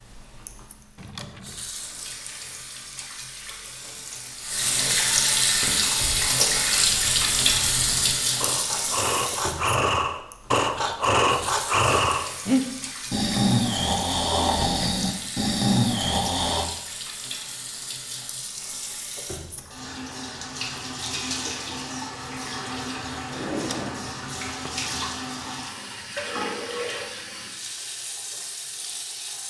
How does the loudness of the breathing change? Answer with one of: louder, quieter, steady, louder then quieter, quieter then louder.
louder.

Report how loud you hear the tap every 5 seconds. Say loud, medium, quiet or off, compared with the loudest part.
medium, loud, quiet, quiet, medium, medium.